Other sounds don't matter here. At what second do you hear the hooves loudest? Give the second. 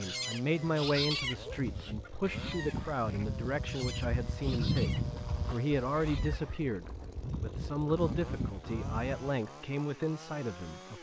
5 s.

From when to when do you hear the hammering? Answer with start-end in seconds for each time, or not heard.
not heard.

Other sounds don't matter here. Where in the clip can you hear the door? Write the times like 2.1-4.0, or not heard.
not heard.